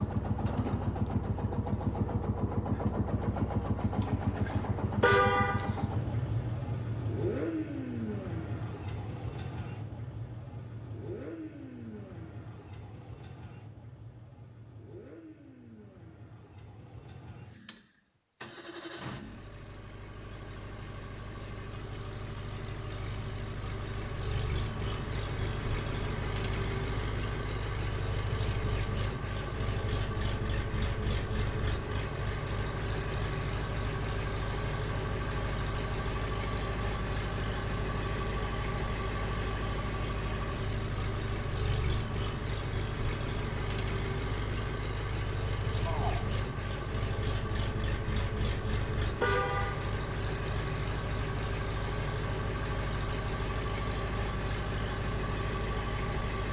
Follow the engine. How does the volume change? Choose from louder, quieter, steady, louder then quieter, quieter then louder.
quieter then louder.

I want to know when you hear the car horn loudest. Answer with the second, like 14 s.
5 s.